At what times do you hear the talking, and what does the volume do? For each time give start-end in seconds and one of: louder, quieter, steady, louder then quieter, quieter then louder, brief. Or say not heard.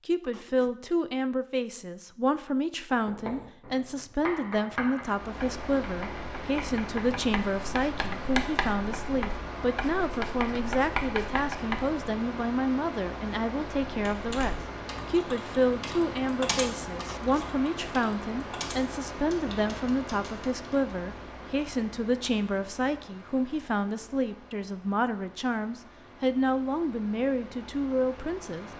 0.1-28.7 steady.